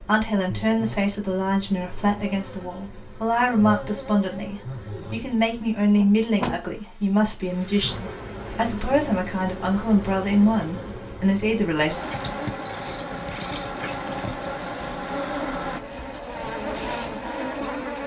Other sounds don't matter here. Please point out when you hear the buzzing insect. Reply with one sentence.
The buzzing insect can be heard from 0.0 to 18.0 s.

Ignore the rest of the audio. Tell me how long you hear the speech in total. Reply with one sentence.
You can hear the speech for 12 seconds altogether.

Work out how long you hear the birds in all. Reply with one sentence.
You can't hear the birds here.